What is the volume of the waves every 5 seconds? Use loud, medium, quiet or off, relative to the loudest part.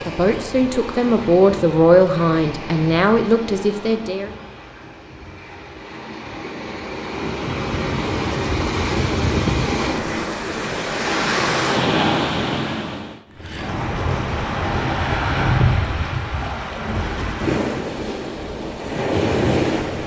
medium, loud, loud, loud.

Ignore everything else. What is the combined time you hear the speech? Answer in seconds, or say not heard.
4 s.